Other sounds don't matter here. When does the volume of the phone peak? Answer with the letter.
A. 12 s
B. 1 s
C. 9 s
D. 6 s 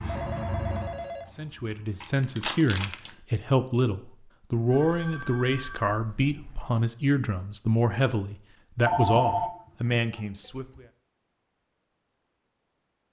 C.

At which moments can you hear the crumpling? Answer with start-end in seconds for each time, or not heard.
2.0-3.1.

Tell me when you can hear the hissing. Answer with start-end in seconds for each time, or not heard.
0.0-2.1.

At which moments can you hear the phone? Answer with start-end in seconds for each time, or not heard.
0.1-1.8, 4.7-6.7, 8.8-10.0.